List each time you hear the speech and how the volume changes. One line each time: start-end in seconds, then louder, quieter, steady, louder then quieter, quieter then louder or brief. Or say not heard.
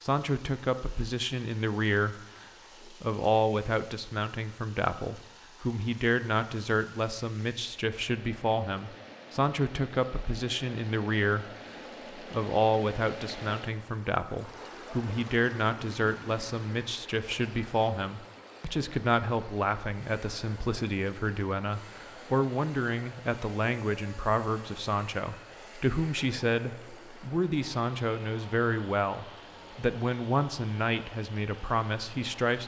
0.0-32.6 steady.